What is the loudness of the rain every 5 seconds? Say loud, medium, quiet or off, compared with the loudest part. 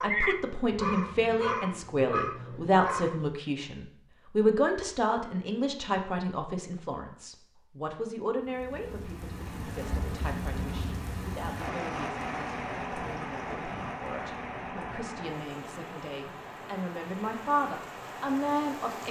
off, medium, loud, medium.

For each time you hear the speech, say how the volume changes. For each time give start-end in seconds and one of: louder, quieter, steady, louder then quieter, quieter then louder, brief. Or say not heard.
0.0-19.0 quieter then louder.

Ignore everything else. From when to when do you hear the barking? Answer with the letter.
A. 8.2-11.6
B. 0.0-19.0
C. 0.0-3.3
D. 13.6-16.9
C.